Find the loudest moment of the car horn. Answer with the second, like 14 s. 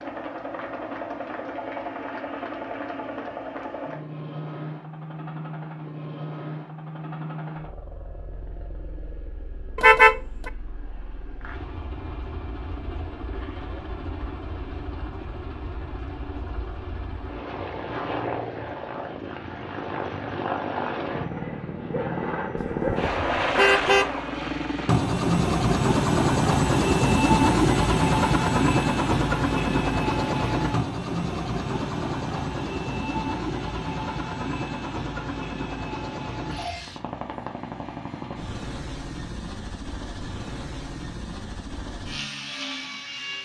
10 s.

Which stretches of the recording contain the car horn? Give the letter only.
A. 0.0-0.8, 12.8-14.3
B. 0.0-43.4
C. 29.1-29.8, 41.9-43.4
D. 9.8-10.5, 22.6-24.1
D.